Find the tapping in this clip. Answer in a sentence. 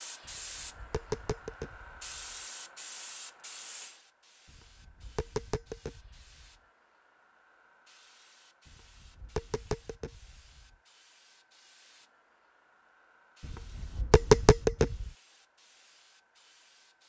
You can hear the tapping from 0.2 to 2.4 s, from 4.5 to 6.5 s, from 8.7 to 10.8 s and from 13.4 to 15.1 s.